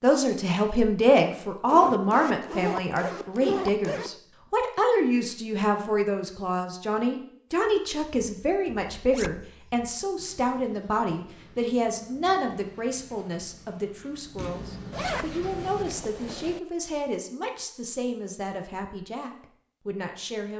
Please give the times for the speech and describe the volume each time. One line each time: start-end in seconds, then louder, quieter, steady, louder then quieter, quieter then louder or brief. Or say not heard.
0.0-20.5 quieter.